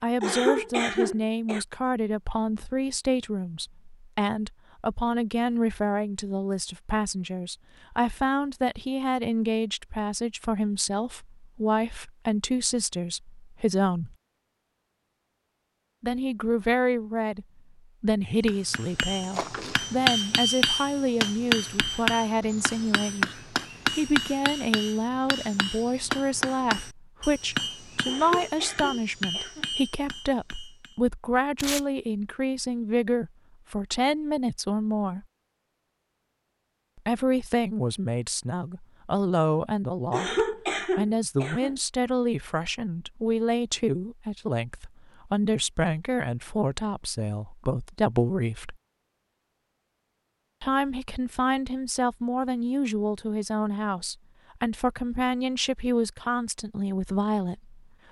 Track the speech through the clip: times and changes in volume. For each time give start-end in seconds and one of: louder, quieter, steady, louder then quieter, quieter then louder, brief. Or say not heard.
0.0-14.2 steady
16.0-35.2 steady
37.0-48.8 steady
50.6-57.8 steady.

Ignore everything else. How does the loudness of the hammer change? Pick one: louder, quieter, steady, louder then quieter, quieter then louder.
quieter.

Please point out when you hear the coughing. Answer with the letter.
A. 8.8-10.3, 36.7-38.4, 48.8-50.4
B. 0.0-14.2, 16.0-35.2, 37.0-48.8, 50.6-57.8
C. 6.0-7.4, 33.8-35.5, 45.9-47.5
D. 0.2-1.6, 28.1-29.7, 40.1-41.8
D.